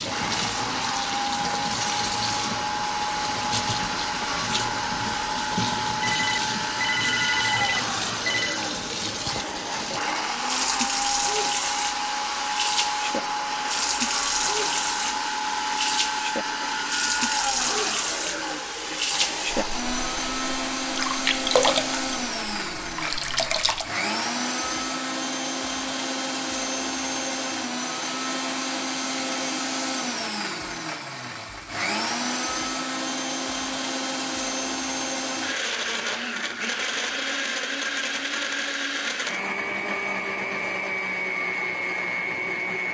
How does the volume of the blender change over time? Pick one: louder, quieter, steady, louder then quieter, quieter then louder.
steady.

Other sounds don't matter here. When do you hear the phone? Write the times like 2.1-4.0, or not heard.
6.0-8.6.